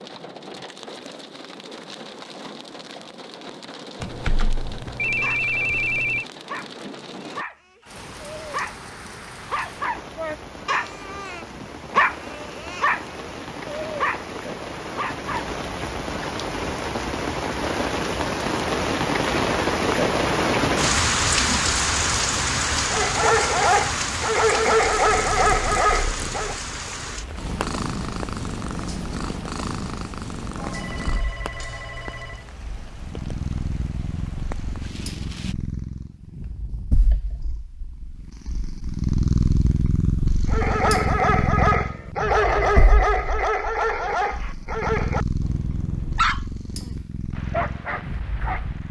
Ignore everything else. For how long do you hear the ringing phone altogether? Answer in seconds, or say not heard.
4 s.